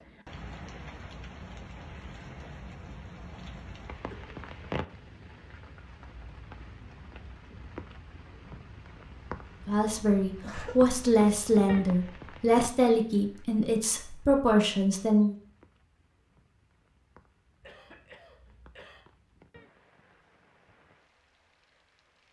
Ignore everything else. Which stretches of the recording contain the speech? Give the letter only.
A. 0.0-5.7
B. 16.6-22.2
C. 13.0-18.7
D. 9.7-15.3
D.